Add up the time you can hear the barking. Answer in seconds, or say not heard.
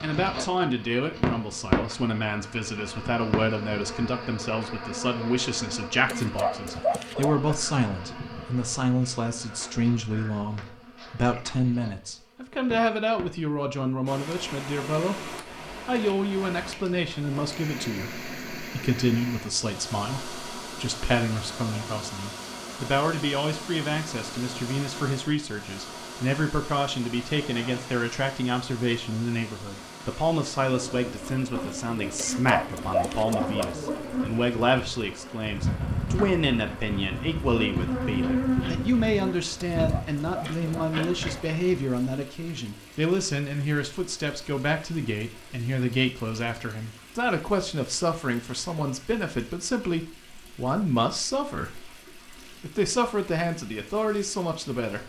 5 s.